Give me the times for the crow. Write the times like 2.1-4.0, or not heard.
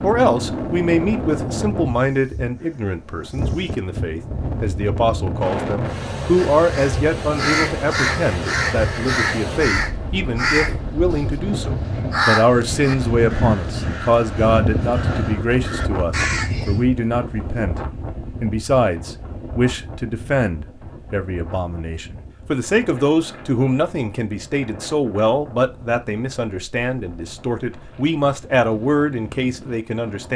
6.3-16.9.